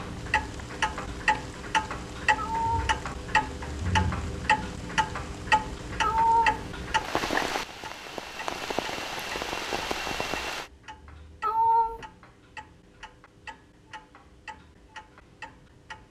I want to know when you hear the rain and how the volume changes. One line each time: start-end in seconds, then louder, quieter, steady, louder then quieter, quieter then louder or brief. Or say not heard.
0.0-10.7 louder.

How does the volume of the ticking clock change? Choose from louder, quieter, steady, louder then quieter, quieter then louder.
quieter.